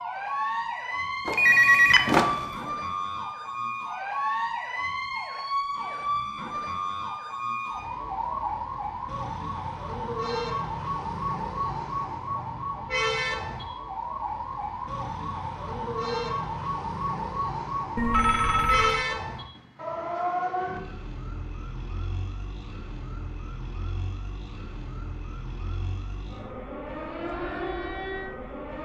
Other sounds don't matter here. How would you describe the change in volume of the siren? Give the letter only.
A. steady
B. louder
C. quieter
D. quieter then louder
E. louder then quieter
C.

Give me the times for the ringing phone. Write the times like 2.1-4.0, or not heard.
1.2-2.4, 17.9-19.1.